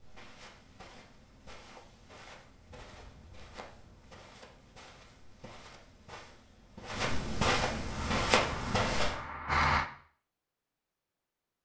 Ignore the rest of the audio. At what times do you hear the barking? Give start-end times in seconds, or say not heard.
not heard.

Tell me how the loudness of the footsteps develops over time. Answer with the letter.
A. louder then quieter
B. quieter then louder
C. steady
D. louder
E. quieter
D.